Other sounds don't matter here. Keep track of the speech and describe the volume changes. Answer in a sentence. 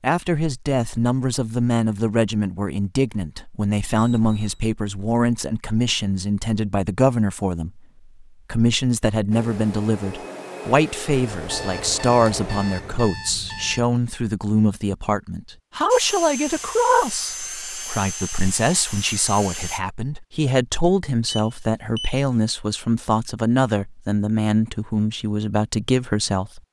The volume of the speech stays about the same.